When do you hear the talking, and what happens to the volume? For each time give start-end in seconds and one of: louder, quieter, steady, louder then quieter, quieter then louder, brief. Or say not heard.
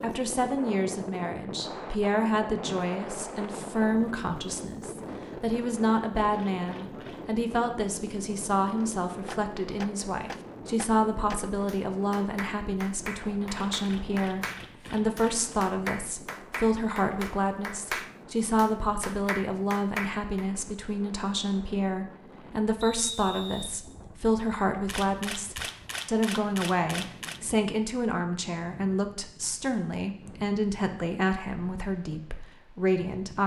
0.0-33.4 steady.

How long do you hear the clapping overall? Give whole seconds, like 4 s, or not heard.
12 s.